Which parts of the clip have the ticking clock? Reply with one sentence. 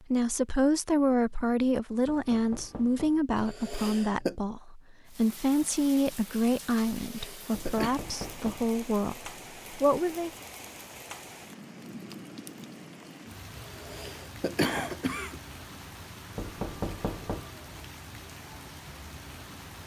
The ticking clock can't be heard in this clip.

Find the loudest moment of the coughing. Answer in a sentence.
The volume of the coughing peaks at 15 seconds.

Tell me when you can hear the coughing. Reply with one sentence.
The coughing can be heard from 3.4 to 4.3 s, from 7.0 to 8.0 s and from 13.6 to 15.4 s.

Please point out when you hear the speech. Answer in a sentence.
You can hear the speech from 0.1 to 10.3 s.